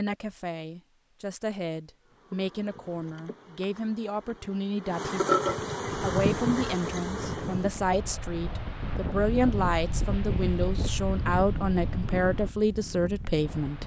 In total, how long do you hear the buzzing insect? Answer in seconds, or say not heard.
6 s.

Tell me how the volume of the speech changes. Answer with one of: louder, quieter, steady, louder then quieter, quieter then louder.
louder.